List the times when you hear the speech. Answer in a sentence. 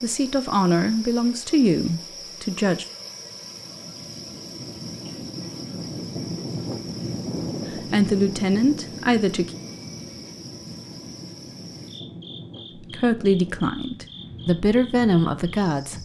The speech can be heard from 0.0 to 2.9 s, from 7.7 to 9.5 s and from 12.8 to 15.9 s.